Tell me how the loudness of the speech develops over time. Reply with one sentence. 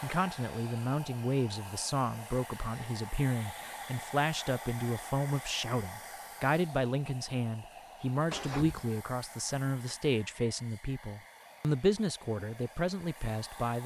The loudness of the speech stays about the same.